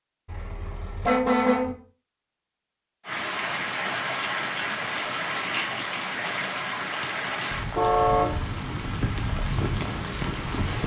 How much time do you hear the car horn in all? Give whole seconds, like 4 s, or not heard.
2 s.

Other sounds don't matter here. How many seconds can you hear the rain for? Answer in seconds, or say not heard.
8 s.